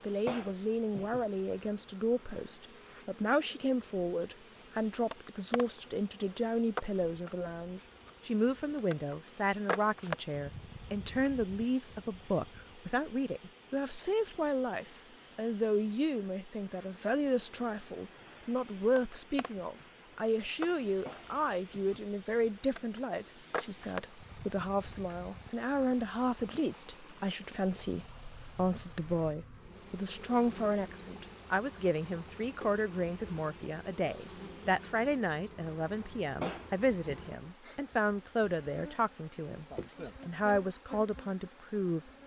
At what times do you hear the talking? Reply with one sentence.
The talking can be heard from 0.0 to 42.0 s.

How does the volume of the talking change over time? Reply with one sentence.
The loudness of the talking stays about the same.